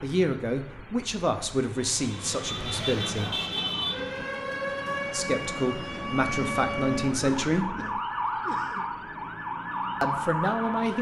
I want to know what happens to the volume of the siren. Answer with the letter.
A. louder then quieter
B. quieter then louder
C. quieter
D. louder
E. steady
E.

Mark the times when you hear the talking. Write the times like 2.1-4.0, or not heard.
0.0-3.3, 5.1-7.7, 10.0-10.9.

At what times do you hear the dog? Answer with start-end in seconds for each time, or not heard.
not heard.